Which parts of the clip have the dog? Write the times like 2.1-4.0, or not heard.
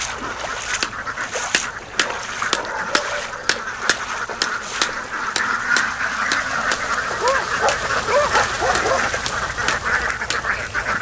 1.9-3.5, 7.1-9.1.